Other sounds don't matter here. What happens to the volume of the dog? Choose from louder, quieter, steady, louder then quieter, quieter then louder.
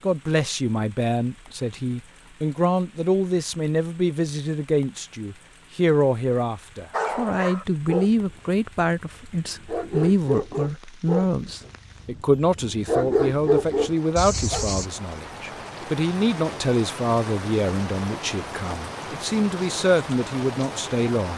louder.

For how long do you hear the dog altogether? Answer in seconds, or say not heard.
8 s.